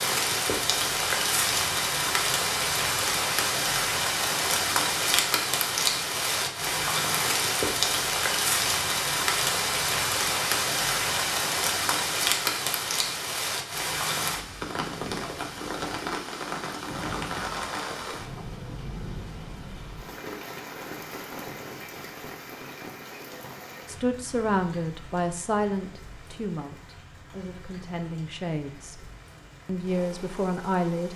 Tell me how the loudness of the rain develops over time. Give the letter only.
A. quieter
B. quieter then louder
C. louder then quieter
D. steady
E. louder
A.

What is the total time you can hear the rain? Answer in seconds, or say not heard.
31 s.